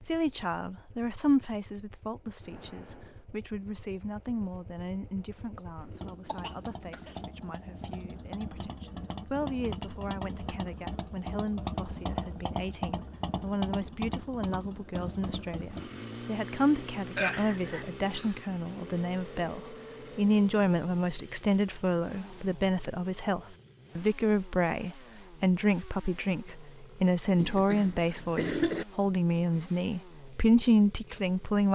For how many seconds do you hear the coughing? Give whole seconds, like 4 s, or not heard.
4 s.